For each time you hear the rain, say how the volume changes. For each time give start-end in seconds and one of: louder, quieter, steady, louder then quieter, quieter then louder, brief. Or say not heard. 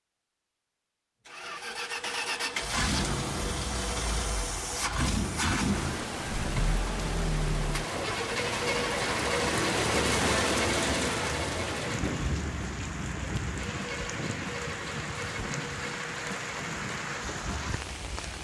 5.5-18.3 louder then quieter.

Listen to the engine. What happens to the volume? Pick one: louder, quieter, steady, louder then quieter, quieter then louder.
quieter.